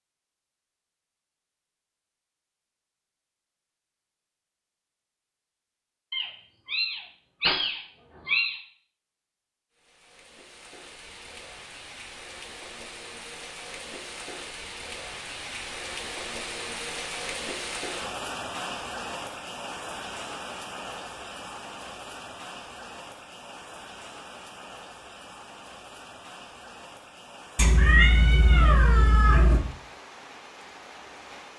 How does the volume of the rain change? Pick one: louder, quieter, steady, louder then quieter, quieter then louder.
louder then quieter.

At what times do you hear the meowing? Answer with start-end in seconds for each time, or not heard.
6.1-8.6, 27.6-29.6.